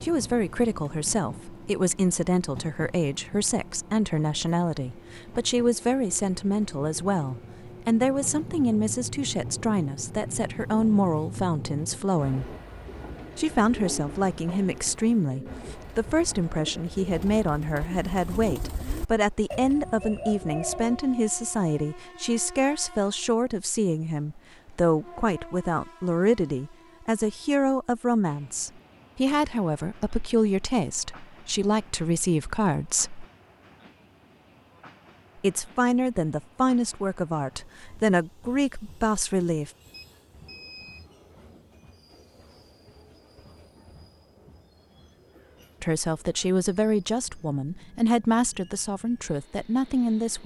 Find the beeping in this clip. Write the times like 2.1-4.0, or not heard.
39.9-41.1.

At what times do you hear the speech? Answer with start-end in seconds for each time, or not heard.
0.0-12.6, 13.3-33.2, 35.4-39.7, 45.8-50.4.